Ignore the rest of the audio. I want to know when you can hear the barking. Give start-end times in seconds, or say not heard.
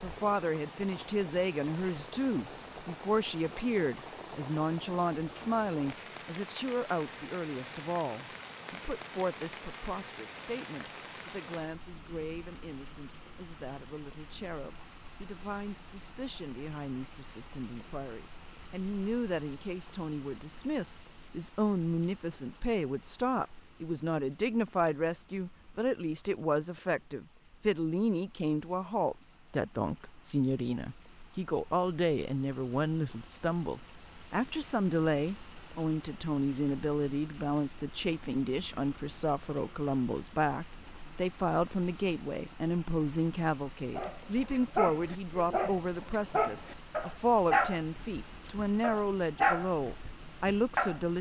44.0-51.0.